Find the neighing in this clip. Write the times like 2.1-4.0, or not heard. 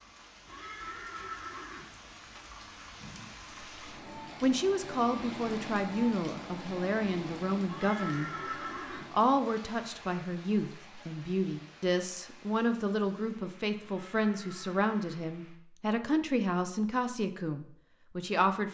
0.5-1.9, 7.7-9.1, 13.8-15.3.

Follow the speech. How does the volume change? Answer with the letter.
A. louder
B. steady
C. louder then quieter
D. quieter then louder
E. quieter
B.